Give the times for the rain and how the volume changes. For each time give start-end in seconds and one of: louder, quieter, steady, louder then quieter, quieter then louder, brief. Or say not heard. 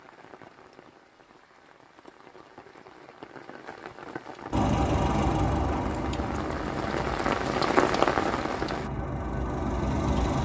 0.0-8.9 louder.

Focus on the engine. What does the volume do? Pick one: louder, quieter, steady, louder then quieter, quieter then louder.
quieter then louder.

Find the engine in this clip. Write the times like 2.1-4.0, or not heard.
4.5-10.4.